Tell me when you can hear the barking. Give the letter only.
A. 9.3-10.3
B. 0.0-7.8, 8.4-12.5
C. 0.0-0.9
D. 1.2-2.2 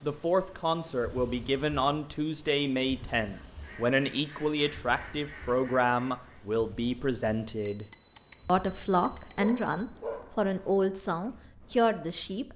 A.